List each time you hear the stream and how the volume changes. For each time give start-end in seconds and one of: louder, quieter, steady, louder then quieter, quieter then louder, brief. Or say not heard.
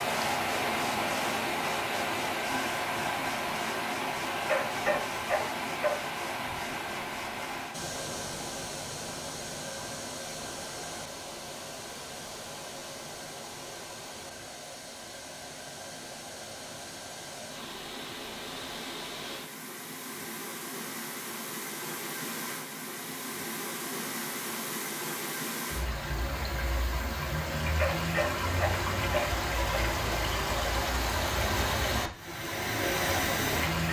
0.0-33.8 quieter then louder.